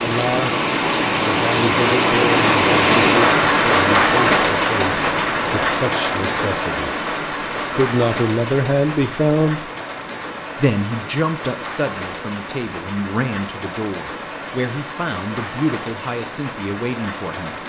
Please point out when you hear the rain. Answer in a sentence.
You can hear the rain from 0.0 to 17.6 s.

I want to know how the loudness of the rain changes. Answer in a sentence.
The loudness of the rain goes down.